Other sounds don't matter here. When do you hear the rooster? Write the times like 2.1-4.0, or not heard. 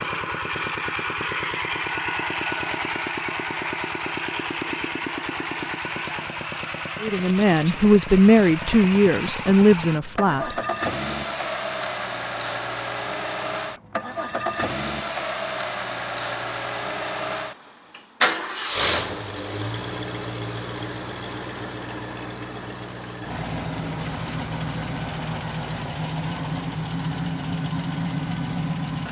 not heard.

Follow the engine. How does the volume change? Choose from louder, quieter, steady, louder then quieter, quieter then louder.
steady.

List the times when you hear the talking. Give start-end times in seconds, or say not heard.
7.0-10.6.